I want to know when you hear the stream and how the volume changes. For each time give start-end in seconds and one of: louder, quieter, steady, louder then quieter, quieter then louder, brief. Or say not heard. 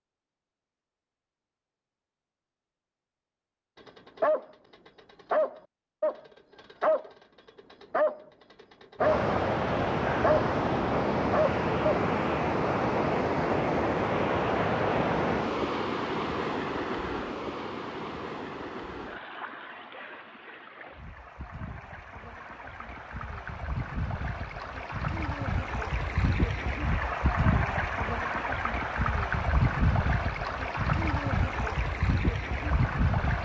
8.9-33.4 quieter then louder.